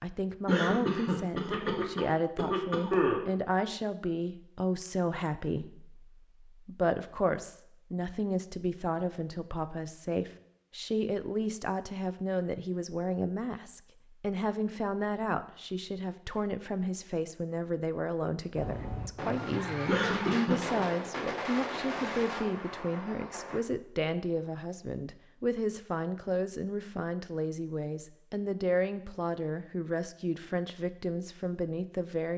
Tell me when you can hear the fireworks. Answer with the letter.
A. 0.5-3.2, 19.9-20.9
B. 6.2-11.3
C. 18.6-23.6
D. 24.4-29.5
C.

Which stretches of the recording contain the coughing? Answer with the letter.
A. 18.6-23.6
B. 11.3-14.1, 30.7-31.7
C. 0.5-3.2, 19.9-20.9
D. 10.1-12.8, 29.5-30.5
C.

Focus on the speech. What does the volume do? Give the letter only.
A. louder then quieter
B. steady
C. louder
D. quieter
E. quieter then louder
B.